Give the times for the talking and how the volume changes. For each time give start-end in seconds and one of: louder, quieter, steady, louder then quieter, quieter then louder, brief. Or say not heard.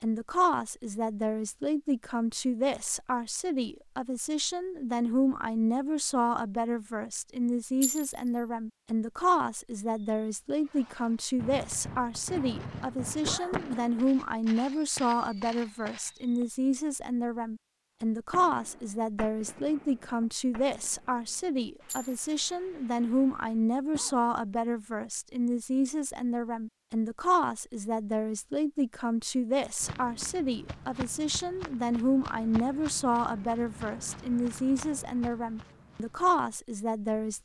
0.0-37.4 steady.